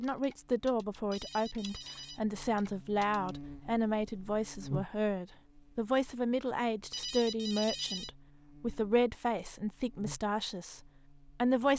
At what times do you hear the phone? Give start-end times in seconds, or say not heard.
1.1-2.2, 6.9-8.1.